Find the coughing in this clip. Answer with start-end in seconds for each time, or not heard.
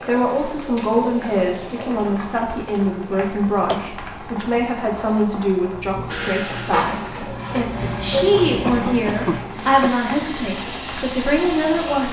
3.1-3.8, 8.6-9.9.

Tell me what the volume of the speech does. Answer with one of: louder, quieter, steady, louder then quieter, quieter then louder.
steady.